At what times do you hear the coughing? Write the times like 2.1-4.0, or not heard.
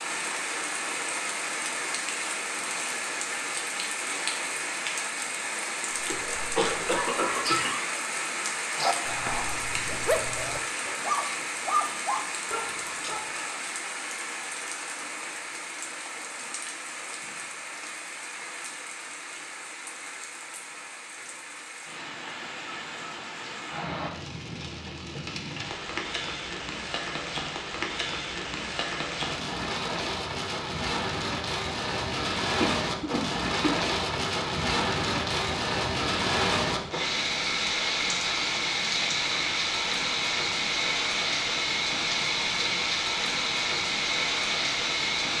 6.0-7.7, 32.6-33.8.